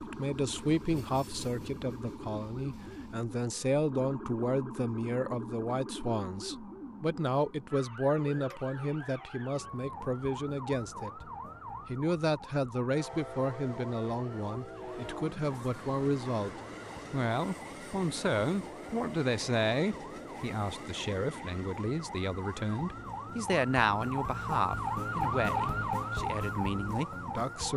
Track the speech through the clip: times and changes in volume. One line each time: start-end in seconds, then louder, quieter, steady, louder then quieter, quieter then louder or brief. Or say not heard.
0.0-27.7 steady.